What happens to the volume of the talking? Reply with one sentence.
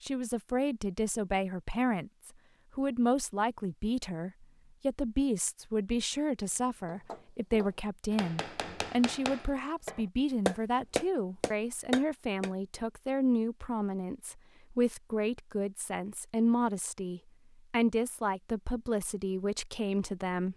The volume of the talking stays about the same.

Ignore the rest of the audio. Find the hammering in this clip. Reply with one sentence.
You can hear the hammering from 6.8 to 12.5 s.